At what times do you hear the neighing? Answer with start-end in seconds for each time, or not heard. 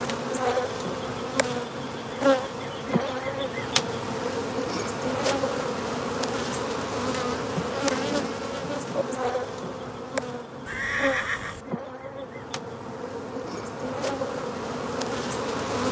10.7-11.6.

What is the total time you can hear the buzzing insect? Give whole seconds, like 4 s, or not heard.
16 s.